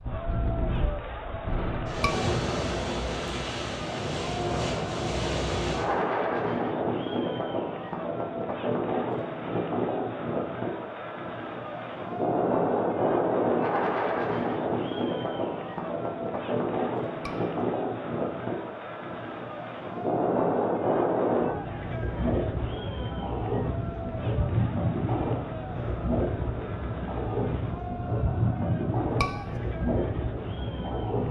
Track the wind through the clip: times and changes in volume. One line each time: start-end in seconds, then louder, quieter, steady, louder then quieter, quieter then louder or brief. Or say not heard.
0.0-31.2 steady.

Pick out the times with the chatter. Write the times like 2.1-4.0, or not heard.
0.0-31.2.